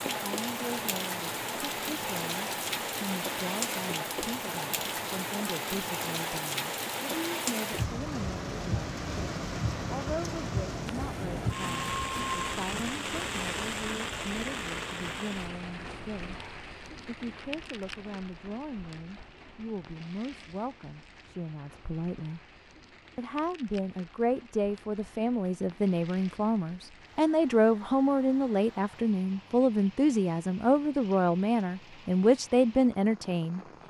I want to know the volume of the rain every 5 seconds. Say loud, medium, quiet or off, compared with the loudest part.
loud, loud, loud, medium, quiet, quiet, quiet.